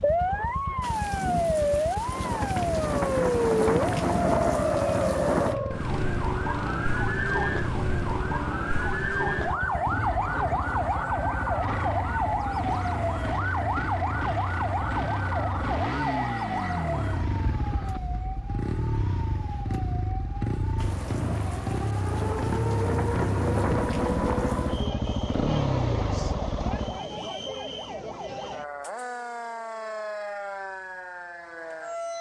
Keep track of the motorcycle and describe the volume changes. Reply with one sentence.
The loudness of the motorcycle goes up.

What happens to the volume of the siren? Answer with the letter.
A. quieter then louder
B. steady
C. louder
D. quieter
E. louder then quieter
D.